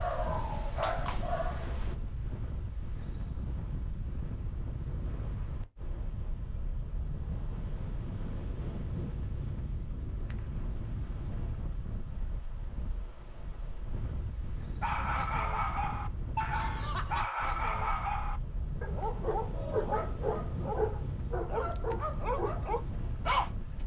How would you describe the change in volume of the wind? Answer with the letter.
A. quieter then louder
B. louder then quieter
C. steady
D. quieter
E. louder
C.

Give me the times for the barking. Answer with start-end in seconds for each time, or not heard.
0.0-1.9, 14.8-23.8.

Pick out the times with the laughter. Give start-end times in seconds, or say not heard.
16.5-17.2.